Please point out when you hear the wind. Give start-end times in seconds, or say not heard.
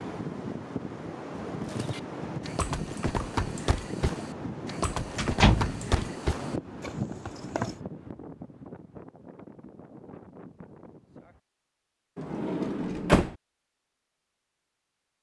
0.0-11.4.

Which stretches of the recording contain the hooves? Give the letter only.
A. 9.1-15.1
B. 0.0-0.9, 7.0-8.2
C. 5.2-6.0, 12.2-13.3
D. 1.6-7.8
D.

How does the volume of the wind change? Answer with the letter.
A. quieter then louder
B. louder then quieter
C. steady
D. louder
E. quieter
E.